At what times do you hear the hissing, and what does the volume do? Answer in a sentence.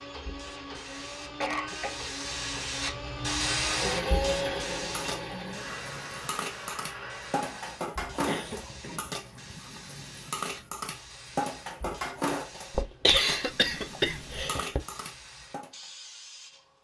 You can hear the hissing from 0.0 to 16.7 s, getting quieter.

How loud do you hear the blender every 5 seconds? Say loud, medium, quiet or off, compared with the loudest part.
loud, medium, off, off.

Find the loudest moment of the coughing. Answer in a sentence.
The volume of the coughing peaks at 13 seconds.